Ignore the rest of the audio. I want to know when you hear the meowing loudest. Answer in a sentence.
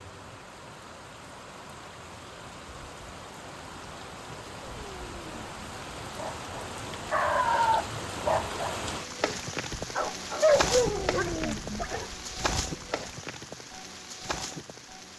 The volume of the meowing peaks at 11 seconds.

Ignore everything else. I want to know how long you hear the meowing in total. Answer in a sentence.
You can hear the meowing for 2 seconds altogether.